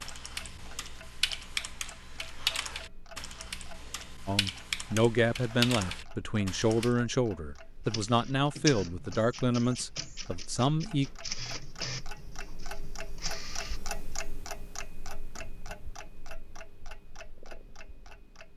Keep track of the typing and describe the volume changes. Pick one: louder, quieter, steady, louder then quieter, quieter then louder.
quieter then louder.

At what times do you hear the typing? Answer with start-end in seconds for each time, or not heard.
0.0-6.9.